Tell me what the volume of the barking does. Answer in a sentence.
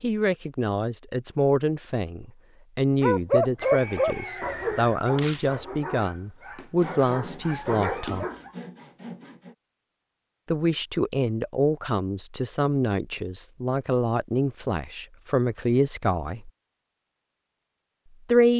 The loudness of the barking goes down, then up.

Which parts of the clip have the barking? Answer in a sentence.
You can hear the barking from 3.0 to 8.5 s.